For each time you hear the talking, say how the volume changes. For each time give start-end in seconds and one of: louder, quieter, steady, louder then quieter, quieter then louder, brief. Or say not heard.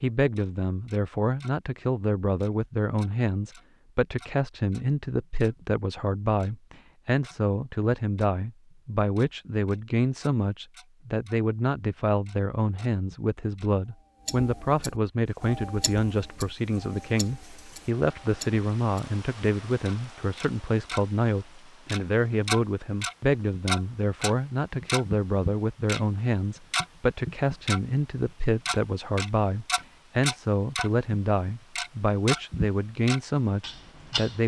0.0-34.4 steady.